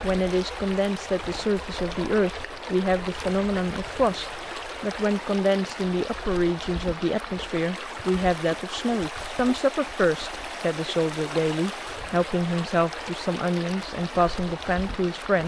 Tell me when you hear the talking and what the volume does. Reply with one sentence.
The talking can be heard from 0.0 to 15.4 s, at a steady volume.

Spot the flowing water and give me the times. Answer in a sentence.
The flowing water can be heard from 0.0 to 15.4 s.